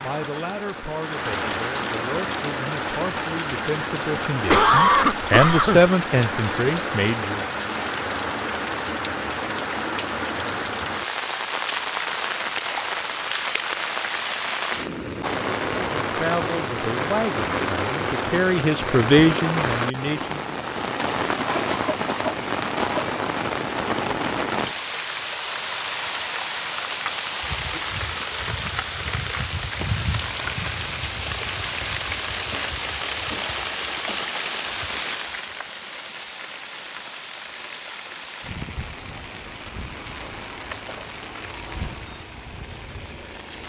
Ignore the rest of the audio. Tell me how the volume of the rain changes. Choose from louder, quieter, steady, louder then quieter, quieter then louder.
quieter.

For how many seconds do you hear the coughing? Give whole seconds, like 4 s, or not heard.
5 s.